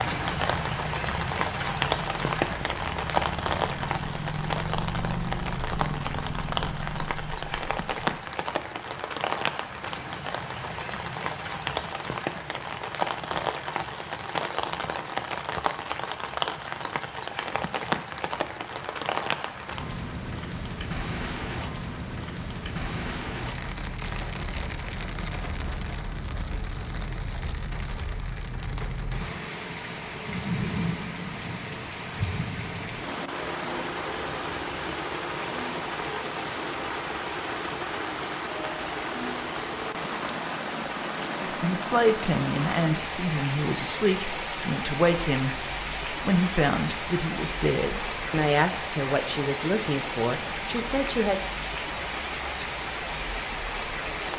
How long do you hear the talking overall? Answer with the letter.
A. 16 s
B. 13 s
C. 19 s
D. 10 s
D.